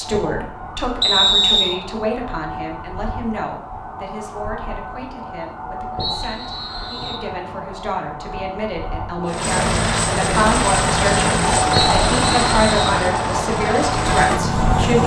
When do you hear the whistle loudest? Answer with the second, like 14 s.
1 s.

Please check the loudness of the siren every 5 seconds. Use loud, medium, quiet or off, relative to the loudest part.
medium, medium, loud.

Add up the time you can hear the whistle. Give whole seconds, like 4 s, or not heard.
3 s.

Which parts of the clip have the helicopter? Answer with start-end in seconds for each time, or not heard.
9.2-15.0.